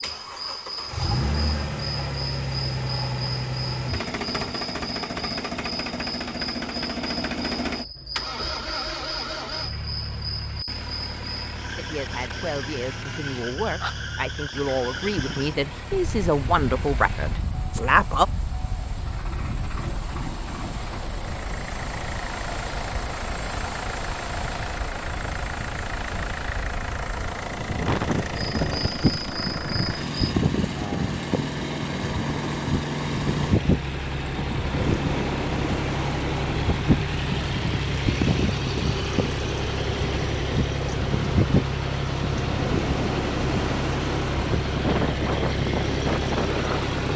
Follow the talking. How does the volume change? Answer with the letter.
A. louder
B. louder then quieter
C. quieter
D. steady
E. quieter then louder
A.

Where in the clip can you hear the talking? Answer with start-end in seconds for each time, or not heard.
11.8-18.2.